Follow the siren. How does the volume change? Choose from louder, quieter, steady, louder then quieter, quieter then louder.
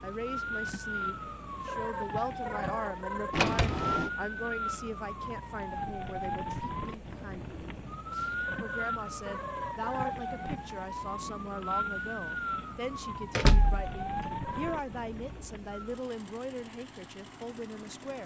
steady.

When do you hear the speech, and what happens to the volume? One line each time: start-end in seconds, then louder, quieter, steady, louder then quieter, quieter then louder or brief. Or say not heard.
0.0-18.2 steady.